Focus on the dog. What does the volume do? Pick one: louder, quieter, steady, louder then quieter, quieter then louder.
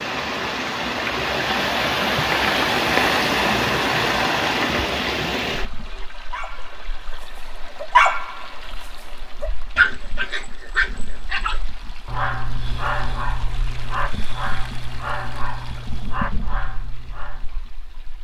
quieter.